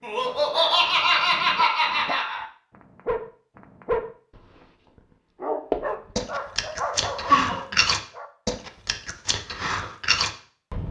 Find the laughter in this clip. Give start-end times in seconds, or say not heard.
0.0-2.4, 7.2-7.8.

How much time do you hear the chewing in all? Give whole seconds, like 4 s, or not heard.
5 s.